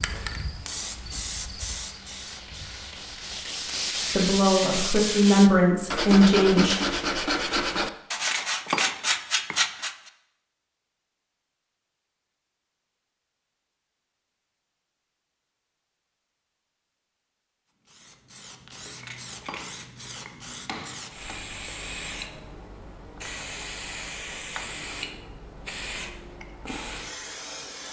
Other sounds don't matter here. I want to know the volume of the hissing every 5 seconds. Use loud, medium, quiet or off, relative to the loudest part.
loud, off, off, medium, loud, loud.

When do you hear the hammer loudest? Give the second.
9 s.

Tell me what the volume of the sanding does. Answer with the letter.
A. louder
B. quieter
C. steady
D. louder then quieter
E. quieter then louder
A.